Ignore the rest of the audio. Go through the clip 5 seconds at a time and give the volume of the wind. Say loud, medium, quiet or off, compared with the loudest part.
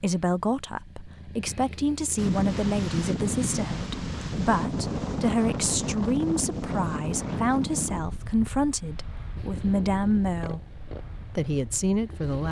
loud, loud, quiet.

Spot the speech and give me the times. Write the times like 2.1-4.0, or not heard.
0.0-10.6, 11.3-12.4.